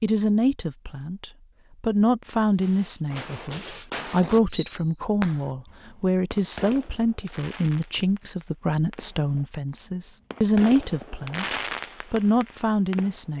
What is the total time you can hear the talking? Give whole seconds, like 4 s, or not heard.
13 s.